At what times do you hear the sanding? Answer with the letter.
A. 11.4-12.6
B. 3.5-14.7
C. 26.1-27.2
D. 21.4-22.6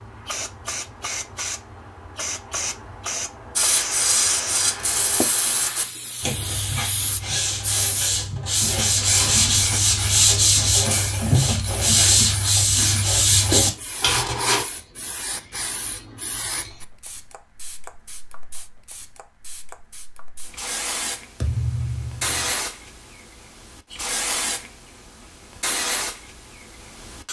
B.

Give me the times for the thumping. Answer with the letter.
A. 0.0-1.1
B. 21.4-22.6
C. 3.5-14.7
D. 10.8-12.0
B.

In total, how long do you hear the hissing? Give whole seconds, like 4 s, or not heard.
27 s.